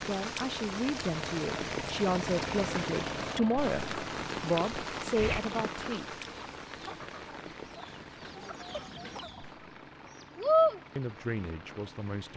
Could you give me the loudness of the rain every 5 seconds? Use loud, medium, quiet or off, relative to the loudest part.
loud, medium, quiet.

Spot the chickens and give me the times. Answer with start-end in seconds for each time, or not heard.
5.2-9.4, 10.3-10.8.